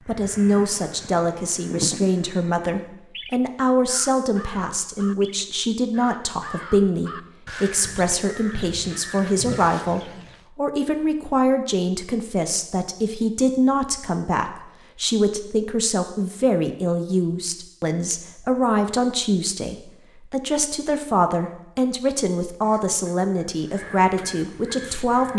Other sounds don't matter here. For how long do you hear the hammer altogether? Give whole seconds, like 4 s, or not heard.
not heard.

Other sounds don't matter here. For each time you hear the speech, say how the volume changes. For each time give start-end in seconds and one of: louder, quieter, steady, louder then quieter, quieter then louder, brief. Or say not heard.
0.1-25.3 steady.